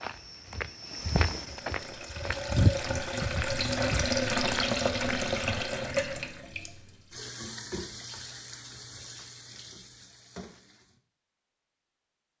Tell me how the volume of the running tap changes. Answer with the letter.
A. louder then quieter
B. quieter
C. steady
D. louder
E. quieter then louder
A.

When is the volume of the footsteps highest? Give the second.
3 s.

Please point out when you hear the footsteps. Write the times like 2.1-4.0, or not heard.
0.0-5.6.